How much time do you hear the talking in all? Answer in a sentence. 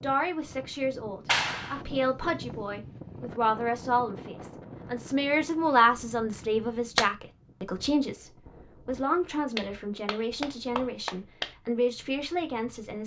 You can hear the talking for 13 seconds altogether.